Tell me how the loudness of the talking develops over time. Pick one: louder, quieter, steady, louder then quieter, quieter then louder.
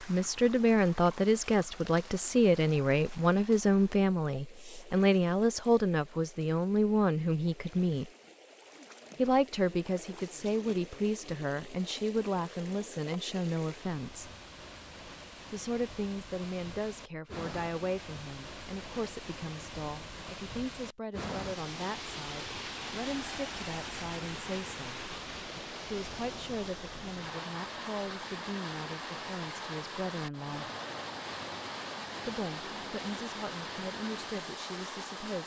quieter.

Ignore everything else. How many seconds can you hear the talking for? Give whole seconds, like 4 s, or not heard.
31 s.